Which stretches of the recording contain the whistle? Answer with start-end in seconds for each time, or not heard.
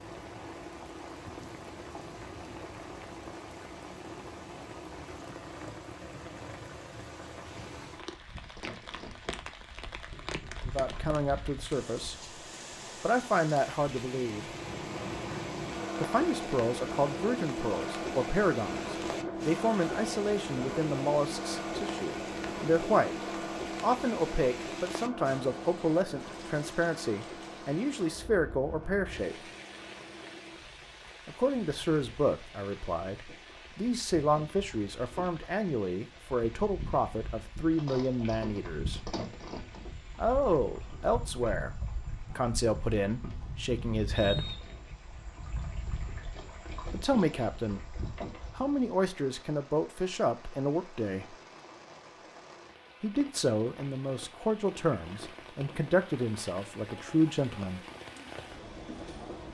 44.1-44.8.